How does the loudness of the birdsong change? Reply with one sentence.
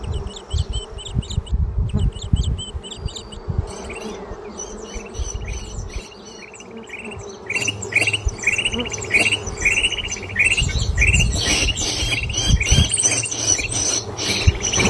The loudness of the birdsong goes up.